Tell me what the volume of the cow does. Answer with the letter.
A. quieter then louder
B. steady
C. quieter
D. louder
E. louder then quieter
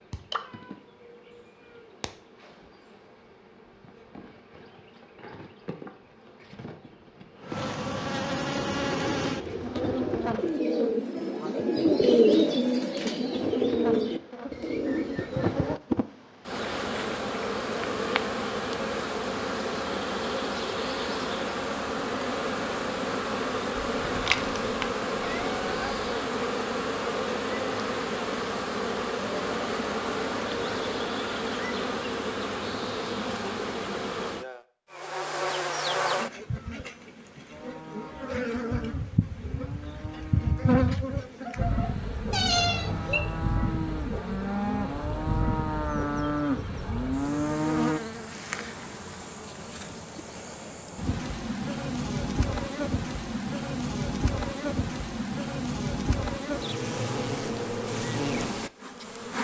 D.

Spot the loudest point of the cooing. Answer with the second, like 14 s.
12 s.